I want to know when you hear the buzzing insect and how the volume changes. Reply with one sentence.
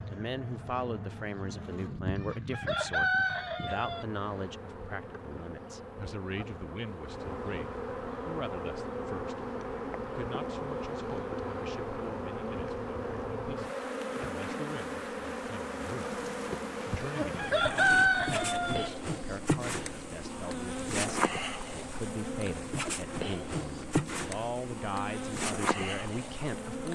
You can hear the buzzing insect from 0.0 to 26.9 s, getting louder.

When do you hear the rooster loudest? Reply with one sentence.
The loudest moment of the rooster is at 18 seconds.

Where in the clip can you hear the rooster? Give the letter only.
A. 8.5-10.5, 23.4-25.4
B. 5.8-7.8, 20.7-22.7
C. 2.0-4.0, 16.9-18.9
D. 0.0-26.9
C.